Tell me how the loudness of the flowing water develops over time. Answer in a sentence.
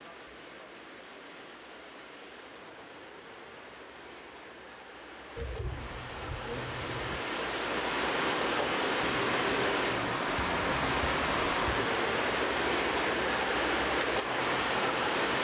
The loudness of the flowing water goes up.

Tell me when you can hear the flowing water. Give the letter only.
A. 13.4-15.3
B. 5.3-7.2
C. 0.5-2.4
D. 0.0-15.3
D.